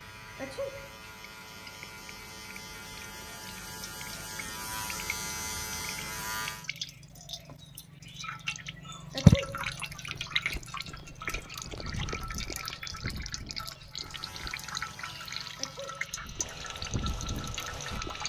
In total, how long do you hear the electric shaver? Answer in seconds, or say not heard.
11 s.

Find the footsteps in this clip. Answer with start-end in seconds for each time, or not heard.
9.3-14.6, 16.1-18.2.